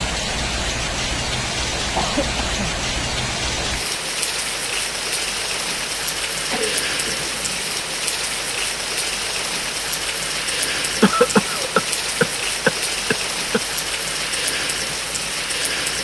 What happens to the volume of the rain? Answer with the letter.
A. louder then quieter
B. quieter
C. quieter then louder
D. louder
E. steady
E.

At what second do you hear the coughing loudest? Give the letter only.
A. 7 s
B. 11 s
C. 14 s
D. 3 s
B.